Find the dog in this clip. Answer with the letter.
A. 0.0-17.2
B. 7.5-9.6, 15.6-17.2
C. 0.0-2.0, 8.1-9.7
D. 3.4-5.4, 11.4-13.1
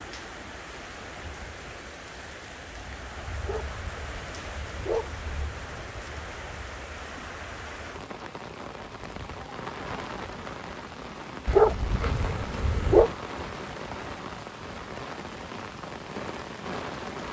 D.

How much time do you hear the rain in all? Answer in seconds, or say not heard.
17 s.